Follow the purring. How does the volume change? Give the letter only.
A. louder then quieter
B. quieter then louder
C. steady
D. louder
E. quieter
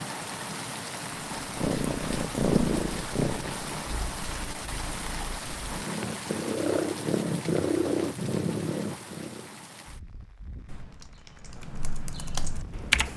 B.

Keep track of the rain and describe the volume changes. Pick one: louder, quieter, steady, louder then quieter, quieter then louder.
quieter.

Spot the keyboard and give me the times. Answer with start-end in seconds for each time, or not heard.
10.7-13.1.